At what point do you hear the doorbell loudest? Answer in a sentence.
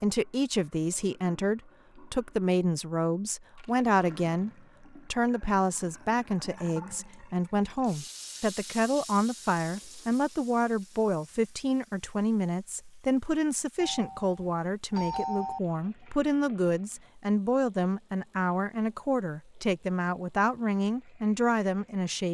The volume of the doorbell peaks at 15 seconds.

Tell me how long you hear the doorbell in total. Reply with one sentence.
You can hear the doorbell for 2 seconds altogether.